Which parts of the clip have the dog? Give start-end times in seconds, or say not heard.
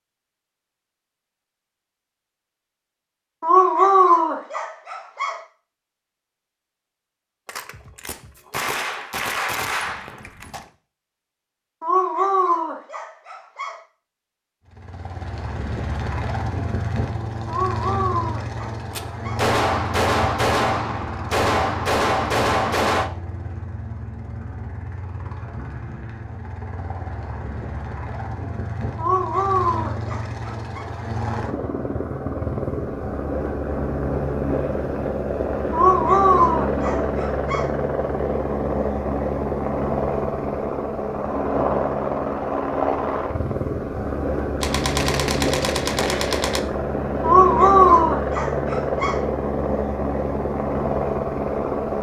3.4-5.3, 11.8-13.8, 17.4-19.4, 28.9-30.8, 35.7-37.6, 47.2-49.2.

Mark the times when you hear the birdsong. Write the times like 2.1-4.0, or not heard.
not heard.